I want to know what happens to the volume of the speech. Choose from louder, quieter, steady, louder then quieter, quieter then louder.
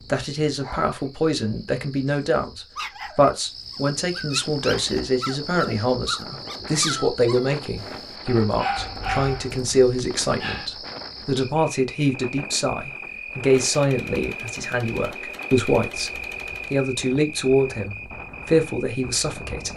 steady.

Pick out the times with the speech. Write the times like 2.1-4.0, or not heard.
0.0-19.7.